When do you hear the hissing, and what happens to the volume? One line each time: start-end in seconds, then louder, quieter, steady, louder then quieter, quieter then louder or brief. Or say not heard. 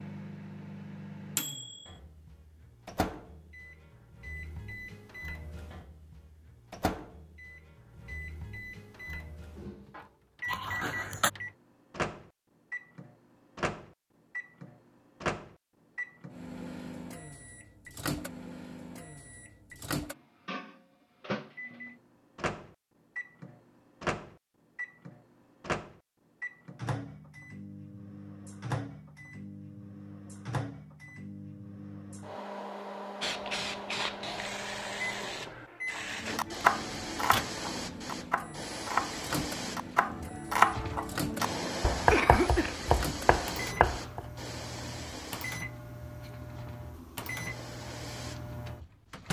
33.2-49.2 quieter.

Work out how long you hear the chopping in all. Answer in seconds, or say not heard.
8 s.